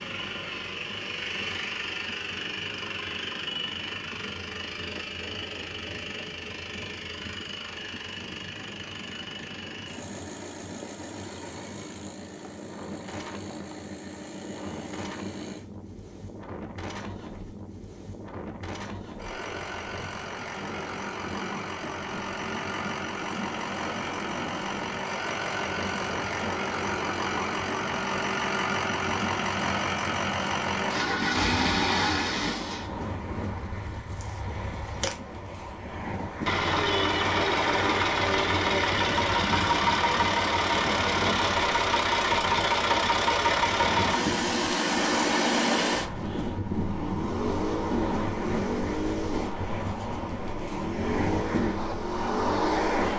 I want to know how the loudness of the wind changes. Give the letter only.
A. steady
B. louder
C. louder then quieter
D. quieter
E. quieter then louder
B.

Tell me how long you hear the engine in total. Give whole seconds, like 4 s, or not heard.
53 s.